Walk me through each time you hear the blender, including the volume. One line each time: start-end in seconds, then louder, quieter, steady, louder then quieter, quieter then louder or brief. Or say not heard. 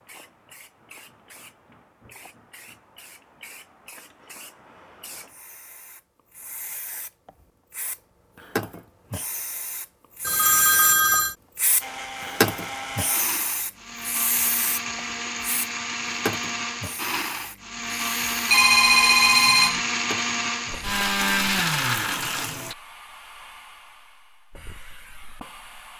11.8-22.8 louder.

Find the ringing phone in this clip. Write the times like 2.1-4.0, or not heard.
10.2-11.3, 18.5-19.8.